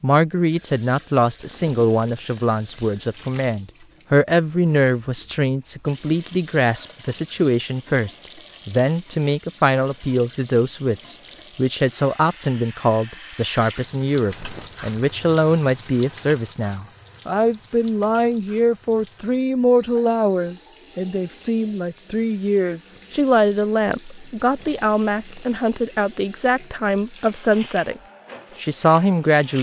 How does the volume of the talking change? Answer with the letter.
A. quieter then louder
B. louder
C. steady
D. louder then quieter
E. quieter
C.